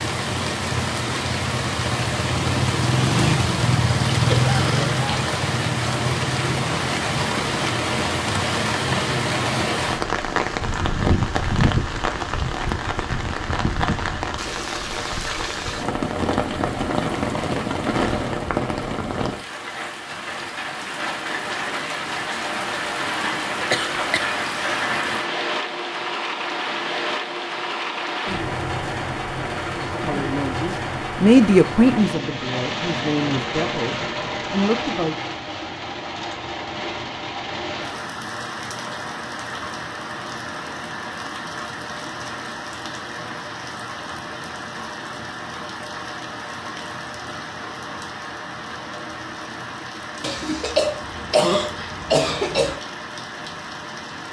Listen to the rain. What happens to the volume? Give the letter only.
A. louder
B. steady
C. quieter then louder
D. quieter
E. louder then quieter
D.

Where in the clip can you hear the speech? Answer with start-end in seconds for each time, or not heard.
29.9-35.1.